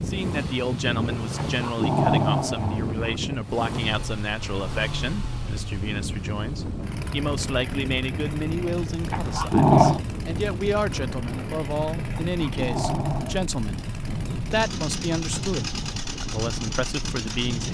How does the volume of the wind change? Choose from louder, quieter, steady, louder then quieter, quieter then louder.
steady.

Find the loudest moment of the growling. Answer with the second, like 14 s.
10 s.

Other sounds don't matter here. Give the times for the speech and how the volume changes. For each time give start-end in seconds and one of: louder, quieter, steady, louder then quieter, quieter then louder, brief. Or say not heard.
0.1-17.6 steady.